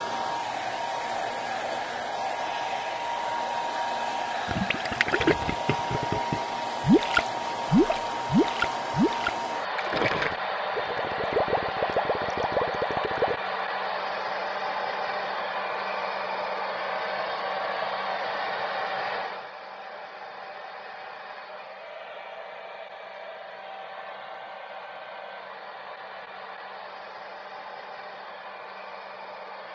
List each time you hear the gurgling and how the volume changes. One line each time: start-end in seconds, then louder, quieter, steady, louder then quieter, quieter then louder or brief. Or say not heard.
4.5-13.3 louder then quieter.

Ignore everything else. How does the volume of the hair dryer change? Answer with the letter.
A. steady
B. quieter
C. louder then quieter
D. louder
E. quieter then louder
B.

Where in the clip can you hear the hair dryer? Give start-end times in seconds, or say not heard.
0.0-29.7.